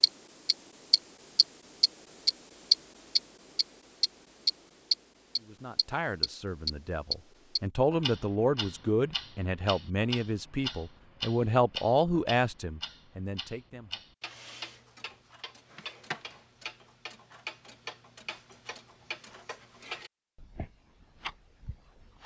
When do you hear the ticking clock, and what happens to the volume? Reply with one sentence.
The ticking clock can be heard from 0.0 to 22.2 s, getting quieter.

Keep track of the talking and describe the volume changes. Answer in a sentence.
The loudness of the talking goes up.